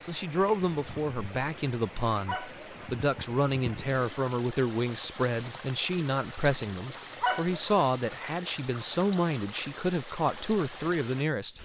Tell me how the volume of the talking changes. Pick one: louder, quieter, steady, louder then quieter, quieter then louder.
steady.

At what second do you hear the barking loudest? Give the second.
7 s.